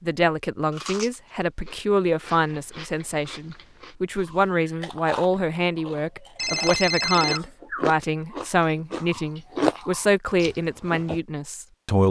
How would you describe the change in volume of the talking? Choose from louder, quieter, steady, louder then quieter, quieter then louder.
steady.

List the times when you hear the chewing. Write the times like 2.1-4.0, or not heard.
0.7-11.2.